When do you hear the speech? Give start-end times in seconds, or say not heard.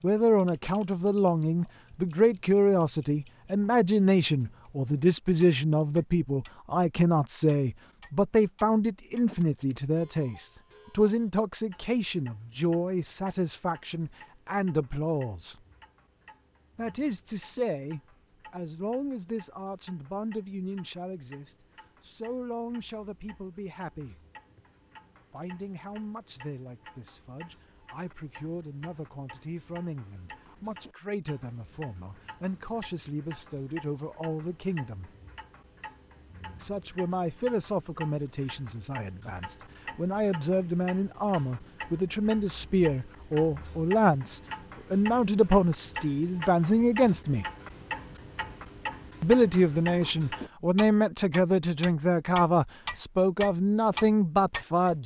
0.0-15.6, 16.8-24.2, 25.3-35.1, 36.6-47.5, 49.2-55.0.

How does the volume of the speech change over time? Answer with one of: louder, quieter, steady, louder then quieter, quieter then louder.
quieter then louder.